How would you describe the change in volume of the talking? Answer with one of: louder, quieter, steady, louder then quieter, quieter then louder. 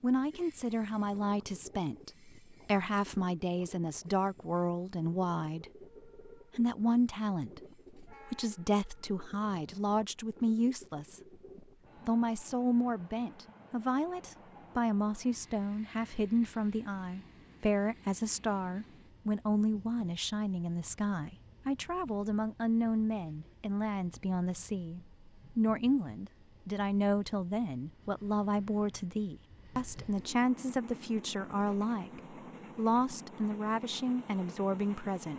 steady.